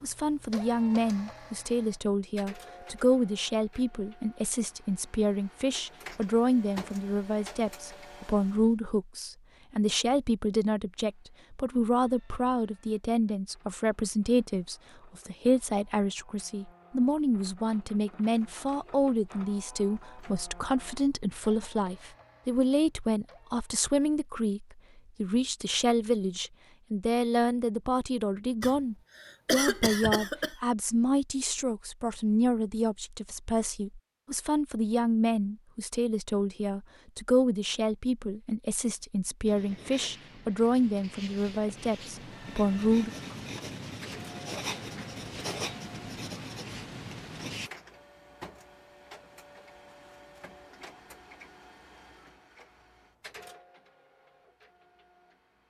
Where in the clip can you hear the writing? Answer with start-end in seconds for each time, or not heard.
39.0-47.7.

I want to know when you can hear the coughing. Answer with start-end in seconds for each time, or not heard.
28.6-30.6.